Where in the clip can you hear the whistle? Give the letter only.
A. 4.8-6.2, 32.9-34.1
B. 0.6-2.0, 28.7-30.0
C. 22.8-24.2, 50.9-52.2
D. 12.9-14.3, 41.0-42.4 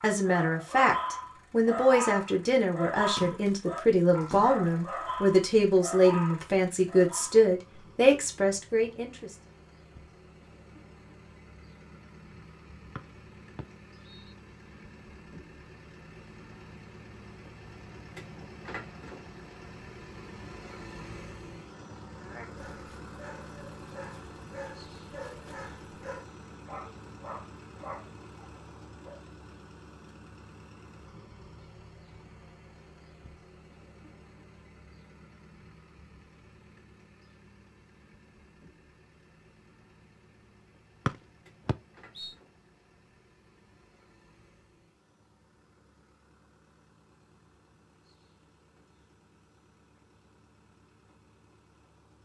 D.